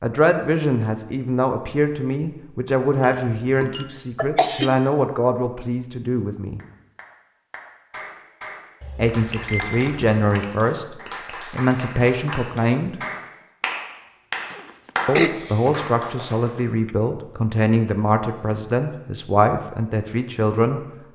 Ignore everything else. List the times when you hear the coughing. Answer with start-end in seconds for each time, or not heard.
4.2-4.7, 14.5-15.7.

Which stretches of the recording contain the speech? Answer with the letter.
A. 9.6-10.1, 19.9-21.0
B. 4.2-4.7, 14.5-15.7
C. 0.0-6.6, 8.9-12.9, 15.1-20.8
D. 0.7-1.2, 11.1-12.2
C.